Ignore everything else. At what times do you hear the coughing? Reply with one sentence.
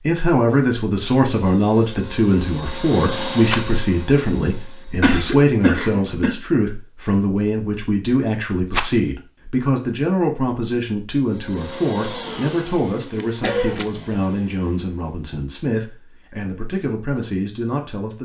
The coughing can be heard from 5.0 to 6.3 s and from 13.4 to 13.8 s.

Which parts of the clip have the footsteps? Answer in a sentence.
You can't hear the footsteps here.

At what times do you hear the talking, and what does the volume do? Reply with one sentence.
You can hear the talking from 0.0 to 18.1 s, getting quieter.